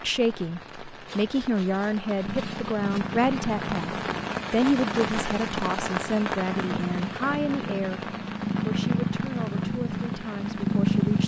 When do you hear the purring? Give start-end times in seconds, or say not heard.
2.2-11.2.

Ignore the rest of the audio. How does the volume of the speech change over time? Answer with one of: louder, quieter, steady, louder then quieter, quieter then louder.
quieter.